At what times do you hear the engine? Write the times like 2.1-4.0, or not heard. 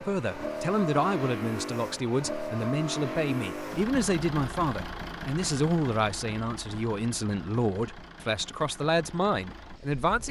0.0-10.2.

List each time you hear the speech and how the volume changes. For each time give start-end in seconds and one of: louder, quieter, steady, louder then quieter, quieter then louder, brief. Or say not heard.
0.0-10.2 steady.